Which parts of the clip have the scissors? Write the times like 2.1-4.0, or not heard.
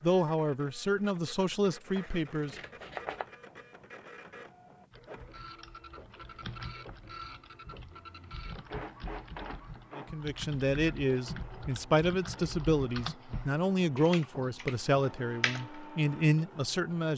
1.9-3.3.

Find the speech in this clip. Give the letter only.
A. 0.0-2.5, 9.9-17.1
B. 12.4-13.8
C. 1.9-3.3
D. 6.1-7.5
A.